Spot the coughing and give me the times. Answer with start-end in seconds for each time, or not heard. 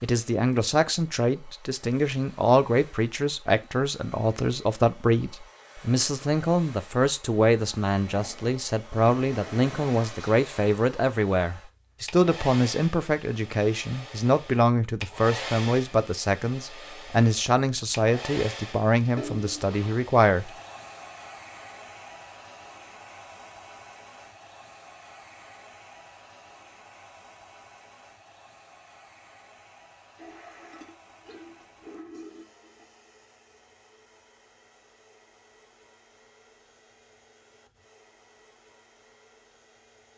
not heard.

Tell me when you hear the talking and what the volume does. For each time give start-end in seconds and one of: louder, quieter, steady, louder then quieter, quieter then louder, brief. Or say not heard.
0.0-20.5 steady.